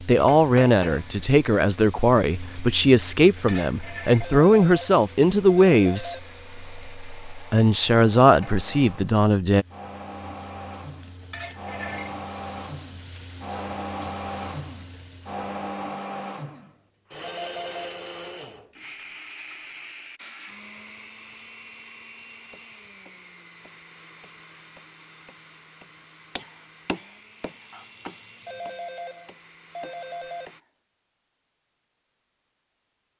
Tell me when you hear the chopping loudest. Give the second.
27 s.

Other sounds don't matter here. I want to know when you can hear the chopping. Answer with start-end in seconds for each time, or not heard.
22.5-30.7.